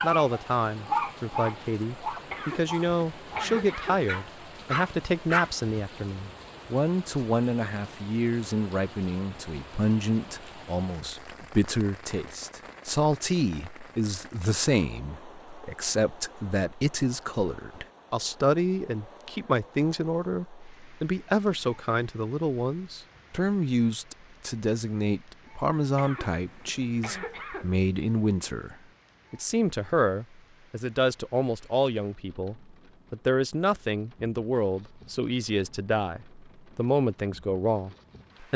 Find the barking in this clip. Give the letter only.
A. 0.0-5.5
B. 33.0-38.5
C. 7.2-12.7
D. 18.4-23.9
A.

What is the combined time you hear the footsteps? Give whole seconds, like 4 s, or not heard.
not heard.